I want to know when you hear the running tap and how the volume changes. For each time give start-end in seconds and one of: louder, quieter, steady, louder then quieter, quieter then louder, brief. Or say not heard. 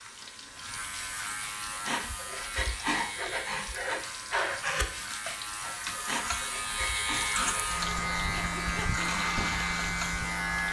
0.0-10.6 louder.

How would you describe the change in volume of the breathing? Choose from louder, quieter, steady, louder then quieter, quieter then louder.
quieter.